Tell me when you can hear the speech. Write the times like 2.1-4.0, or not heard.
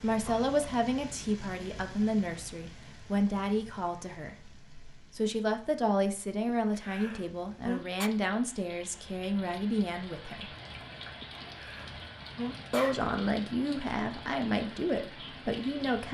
0.0-10.5, 12.7-16.0.